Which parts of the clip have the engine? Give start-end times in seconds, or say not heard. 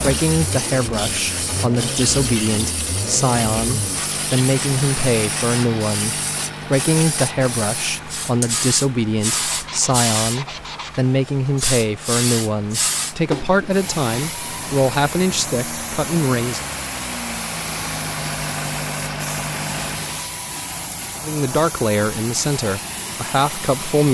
0.0-20.4.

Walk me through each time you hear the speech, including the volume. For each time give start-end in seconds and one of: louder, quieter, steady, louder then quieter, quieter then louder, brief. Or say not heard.
0.0-16.6 steady
21.2-24.0 brief.